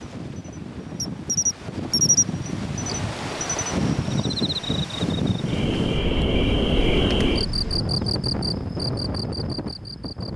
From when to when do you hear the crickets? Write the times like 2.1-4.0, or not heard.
0.0-10.3.